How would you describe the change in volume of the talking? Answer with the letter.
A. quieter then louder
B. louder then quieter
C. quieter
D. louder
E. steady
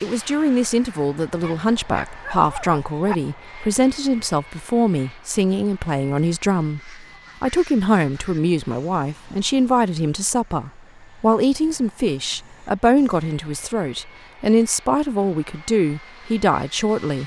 E.